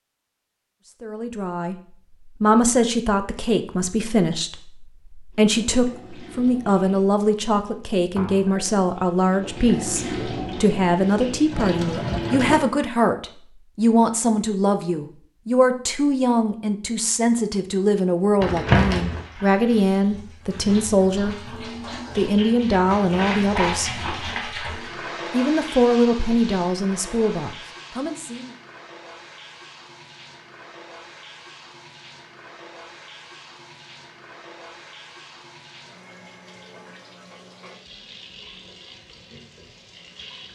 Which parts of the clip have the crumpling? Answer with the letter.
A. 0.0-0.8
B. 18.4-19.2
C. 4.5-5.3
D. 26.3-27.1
B.